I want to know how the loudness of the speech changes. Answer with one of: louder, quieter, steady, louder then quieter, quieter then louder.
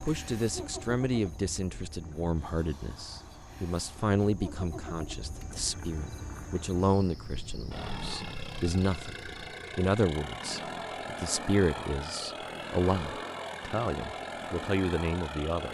steady.